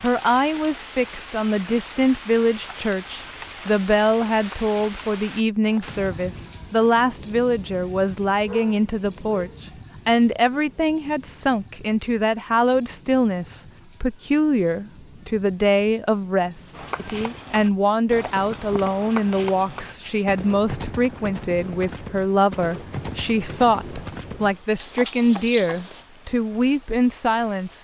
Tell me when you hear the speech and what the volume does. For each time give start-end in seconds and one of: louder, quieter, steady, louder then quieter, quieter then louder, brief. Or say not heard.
0.0-27.7 steady.